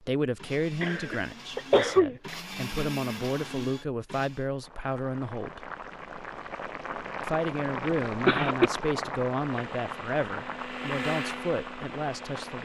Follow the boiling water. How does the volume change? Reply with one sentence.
The volume of the boiling water goes up, then down.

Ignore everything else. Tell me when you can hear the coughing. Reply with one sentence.
The coughing can be heard from 0.8 to 2.4 s and from 7.8 to 8.7 s.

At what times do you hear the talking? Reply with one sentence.
The talking can be heard from 0.0 to 5.7 s and from 7.2 to 12.5 s.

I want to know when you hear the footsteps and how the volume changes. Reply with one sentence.
You can't hear the footsteps here.